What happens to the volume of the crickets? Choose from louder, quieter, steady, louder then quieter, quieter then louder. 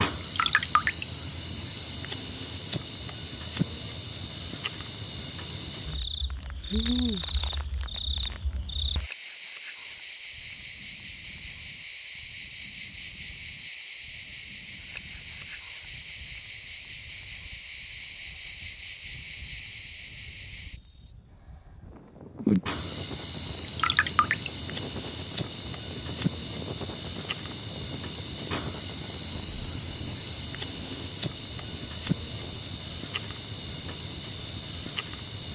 steady.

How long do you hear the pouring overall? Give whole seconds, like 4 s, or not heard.
2 s.